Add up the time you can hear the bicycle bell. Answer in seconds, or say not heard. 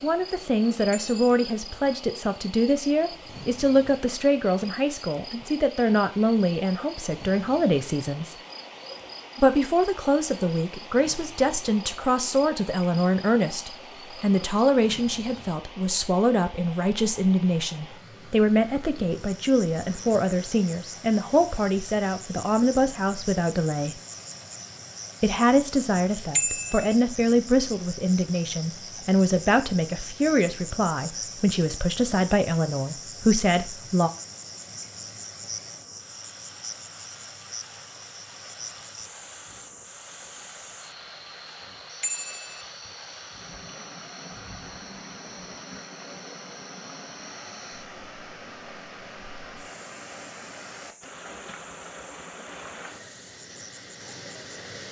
2 s.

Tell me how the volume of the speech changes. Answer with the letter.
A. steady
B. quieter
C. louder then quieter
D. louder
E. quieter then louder
A.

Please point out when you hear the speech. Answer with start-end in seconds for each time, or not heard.
0.0-8.3, 9.3-23.9, 25.2-34.1.